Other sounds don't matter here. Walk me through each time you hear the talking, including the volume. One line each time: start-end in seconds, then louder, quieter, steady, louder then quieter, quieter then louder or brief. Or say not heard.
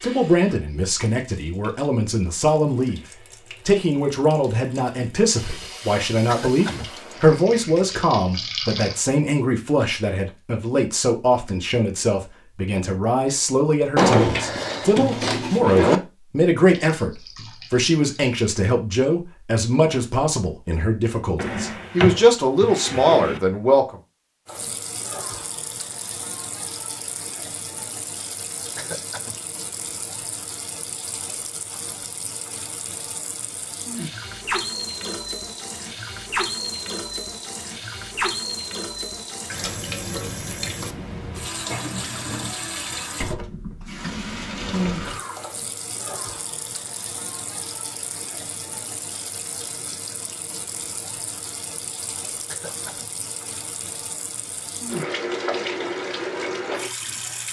0.0-23.9 steady.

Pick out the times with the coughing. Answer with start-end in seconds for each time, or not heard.
6.2-6.9, 28.8-29.4, 52.5-53.1.